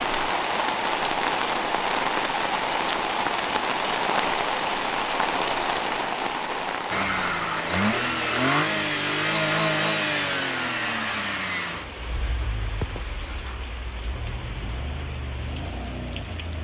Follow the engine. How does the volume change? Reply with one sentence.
The loudness of the engine goes down.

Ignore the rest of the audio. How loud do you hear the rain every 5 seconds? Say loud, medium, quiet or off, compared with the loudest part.
loud, loud, quiet, quiet.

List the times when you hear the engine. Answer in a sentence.
The engine can be heard from 6.9 to 16.5 s.